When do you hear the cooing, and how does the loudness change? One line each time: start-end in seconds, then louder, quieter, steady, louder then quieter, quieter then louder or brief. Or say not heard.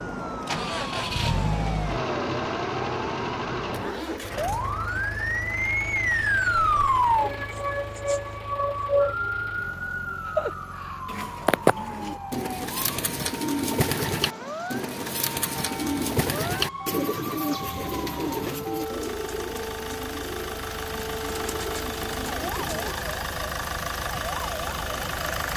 11.1-22.9 quieter.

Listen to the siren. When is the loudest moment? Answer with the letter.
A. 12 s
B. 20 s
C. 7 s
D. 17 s
C.